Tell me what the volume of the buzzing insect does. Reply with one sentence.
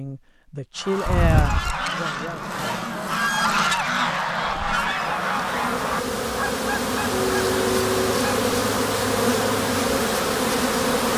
The loudness of the buzzing insect goes up.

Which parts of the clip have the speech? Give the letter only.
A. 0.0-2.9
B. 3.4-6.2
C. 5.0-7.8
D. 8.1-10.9
A.